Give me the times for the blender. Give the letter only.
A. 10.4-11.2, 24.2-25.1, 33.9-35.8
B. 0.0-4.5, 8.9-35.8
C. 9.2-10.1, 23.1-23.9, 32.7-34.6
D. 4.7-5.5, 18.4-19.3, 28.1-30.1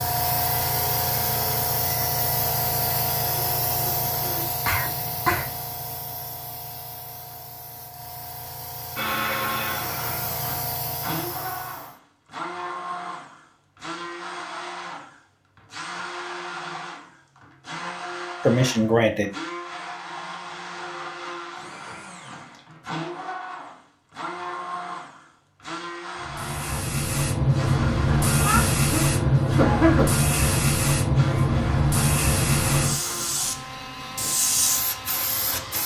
B.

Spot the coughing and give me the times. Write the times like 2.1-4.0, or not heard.
4.7-5.5, 18.4-19.3, 28.1-30.1.